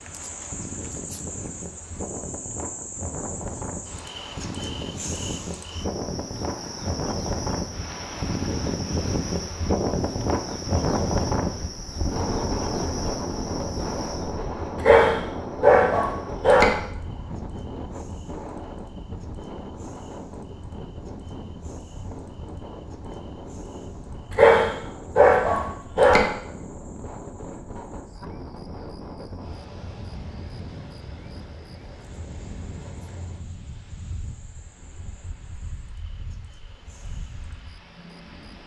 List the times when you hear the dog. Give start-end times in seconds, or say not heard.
14.8-16.8, 24.3-26.3.